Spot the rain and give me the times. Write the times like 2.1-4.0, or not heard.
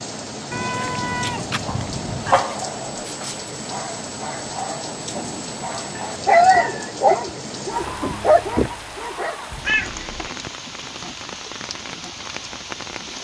0.0-13.1.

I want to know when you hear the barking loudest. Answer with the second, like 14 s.
6 s.